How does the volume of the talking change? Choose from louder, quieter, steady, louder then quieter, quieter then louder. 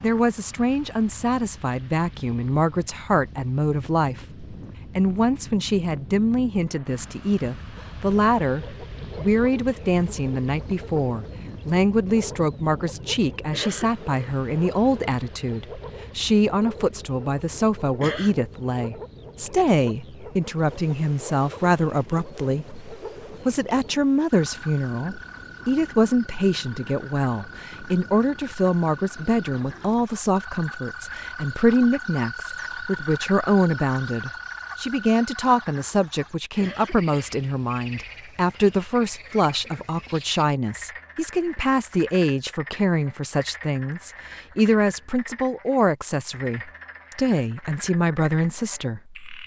steady.